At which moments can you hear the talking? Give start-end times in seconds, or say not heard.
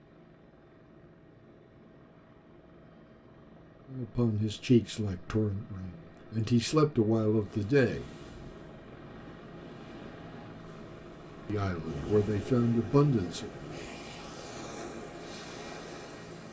3.9-8.1, 11.4-13.5.